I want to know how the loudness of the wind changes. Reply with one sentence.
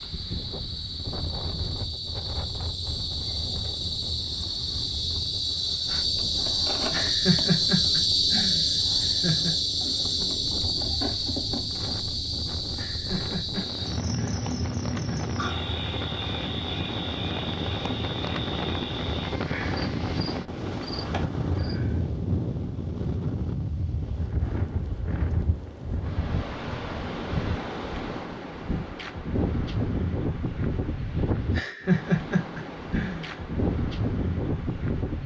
The loudness of the wind goes up.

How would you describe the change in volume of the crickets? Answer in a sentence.
The loudness of the crickets goes up, then down.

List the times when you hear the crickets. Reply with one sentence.
You can hear the crickets from 0.0 to 22.0 s.